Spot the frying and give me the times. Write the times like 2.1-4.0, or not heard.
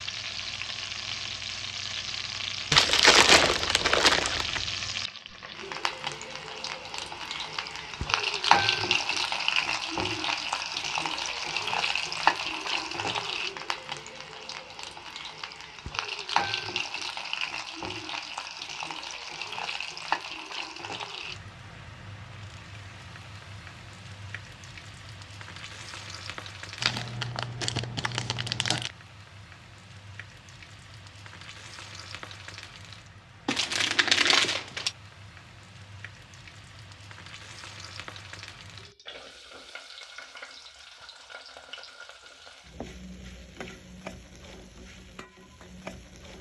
0.0-46.3.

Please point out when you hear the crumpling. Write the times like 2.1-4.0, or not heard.
2.7-4.6, 26.8-28.9, 33.5-35.0.